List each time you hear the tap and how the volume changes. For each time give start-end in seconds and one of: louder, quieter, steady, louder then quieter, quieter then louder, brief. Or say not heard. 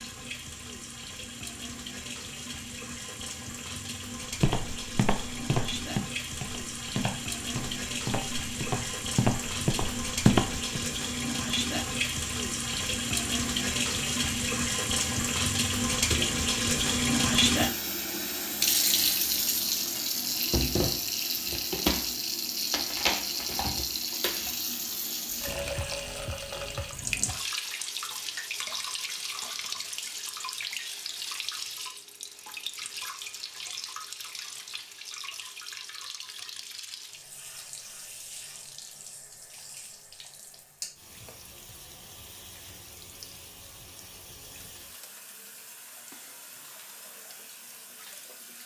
0.0-48.6 louder then quieter.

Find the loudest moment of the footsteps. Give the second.
10 s.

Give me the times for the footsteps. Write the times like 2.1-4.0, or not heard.
4.4-10.8.